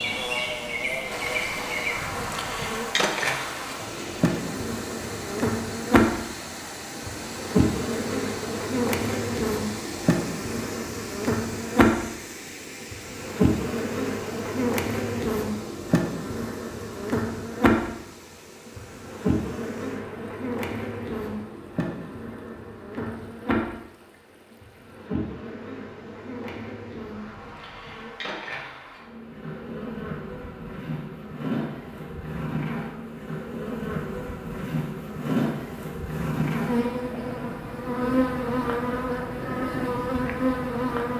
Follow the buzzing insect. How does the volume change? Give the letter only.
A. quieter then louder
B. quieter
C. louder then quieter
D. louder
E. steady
A.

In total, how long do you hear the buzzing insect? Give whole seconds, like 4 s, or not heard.
41 s.